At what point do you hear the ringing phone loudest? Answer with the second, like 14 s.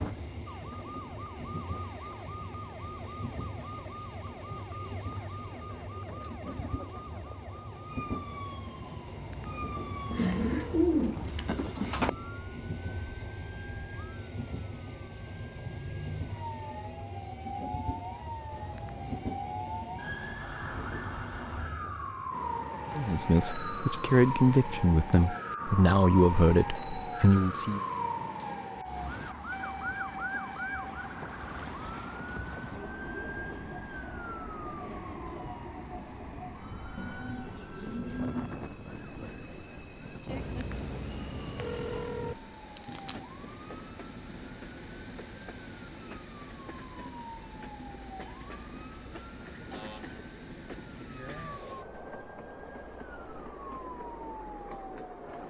42 s.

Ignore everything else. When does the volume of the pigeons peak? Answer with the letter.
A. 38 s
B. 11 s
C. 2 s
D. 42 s
B.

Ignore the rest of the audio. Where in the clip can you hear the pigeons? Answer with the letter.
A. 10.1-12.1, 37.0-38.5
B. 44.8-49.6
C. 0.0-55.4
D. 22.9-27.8
A.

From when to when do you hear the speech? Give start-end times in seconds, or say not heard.
22.9-27.8.